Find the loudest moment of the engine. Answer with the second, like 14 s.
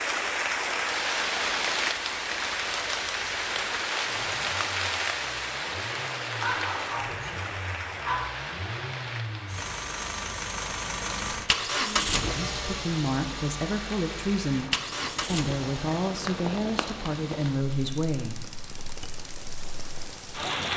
12 s.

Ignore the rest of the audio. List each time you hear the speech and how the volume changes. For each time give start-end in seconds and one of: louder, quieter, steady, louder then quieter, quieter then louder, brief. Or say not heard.
11.8-18.4 steady.